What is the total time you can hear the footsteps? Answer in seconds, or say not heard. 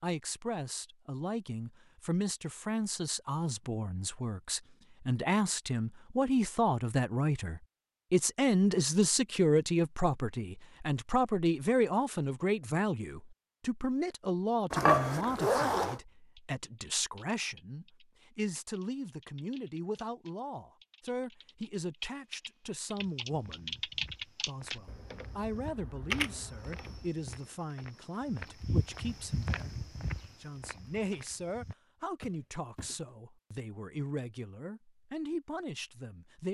10 s.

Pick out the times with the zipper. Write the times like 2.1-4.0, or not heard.
14.7-15.9.